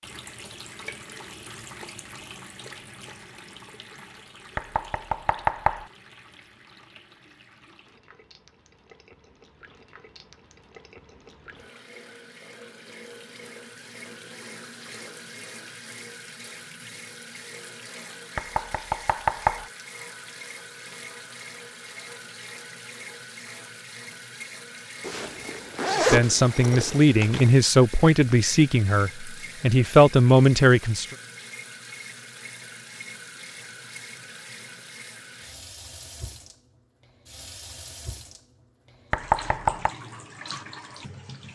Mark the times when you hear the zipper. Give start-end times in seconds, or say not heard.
25.0-27.5.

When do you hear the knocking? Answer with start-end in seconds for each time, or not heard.
4.5-5.8, 18.4-19.6, 39.1-40.0.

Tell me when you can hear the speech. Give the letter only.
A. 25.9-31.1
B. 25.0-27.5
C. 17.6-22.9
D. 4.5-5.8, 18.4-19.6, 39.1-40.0
A.